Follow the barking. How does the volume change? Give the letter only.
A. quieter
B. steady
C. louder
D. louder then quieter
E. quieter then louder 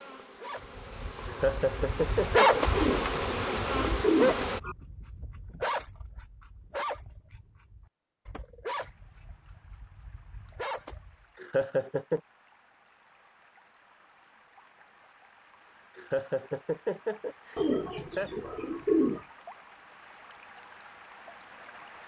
A.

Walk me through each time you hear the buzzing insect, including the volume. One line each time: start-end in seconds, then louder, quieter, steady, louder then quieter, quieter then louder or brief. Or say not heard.
0.0-4.6 louder.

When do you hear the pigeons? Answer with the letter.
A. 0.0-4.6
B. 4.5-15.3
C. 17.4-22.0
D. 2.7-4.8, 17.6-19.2
D.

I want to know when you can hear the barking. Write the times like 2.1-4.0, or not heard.
0.4-11.2.